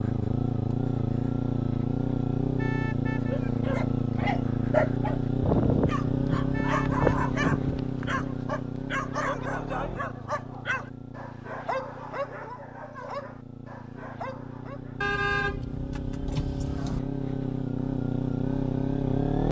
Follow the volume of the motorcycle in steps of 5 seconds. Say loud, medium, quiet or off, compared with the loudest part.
loud, loud, quiet, loud.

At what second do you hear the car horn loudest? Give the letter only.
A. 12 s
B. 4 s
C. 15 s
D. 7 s
C.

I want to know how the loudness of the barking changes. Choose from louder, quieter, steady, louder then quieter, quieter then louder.
quieter.